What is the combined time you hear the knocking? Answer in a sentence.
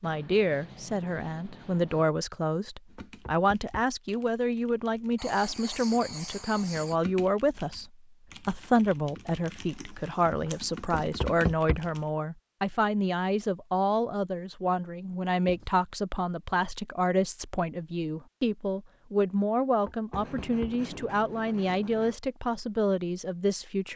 You can hear the knocking for 3 seconds altogether.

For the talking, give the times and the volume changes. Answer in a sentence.
You can hear the talking from 0.0 to 23.9 s, at a steady volume.